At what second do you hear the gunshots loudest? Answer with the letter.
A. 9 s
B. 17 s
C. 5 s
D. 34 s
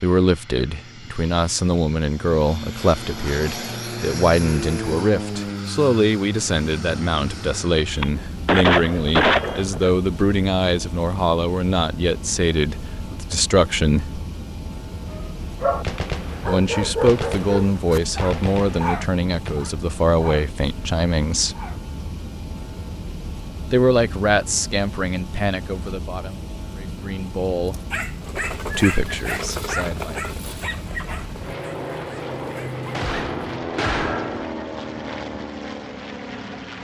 A.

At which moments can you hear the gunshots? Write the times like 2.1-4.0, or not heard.
8.0-9.9, 15.8-16.4, 17.1-19.6, 32.9-34.5.